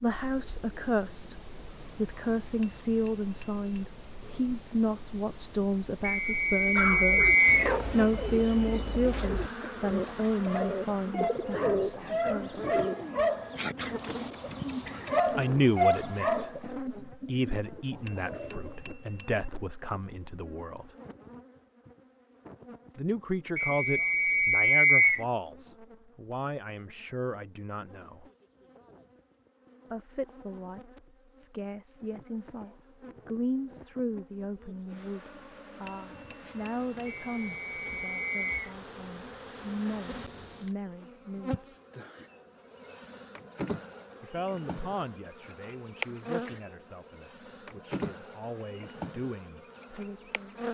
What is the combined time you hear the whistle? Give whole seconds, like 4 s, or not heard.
5 s.